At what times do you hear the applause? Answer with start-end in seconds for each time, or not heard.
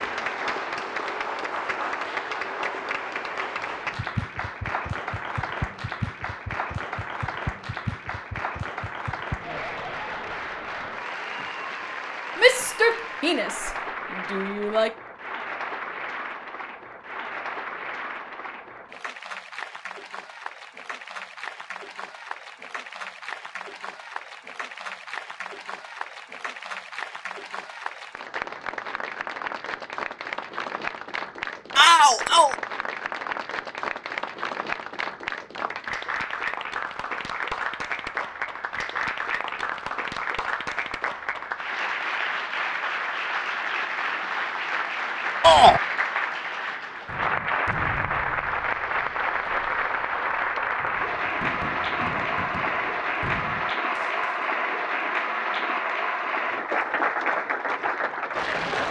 0.0-58.8.